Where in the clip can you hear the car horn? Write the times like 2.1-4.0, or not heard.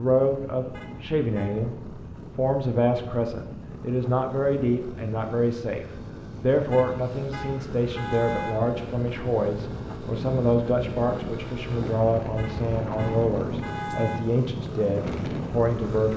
0.7-1.6, 6.7-8.6, 12.3-14.2.